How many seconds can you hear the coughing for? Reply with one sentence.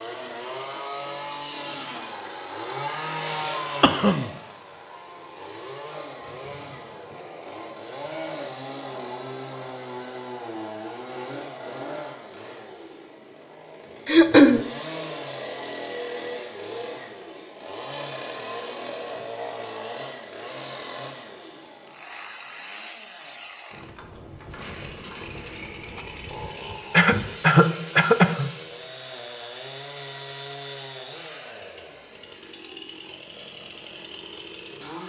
The coughing can be heard for 3 seconds in total.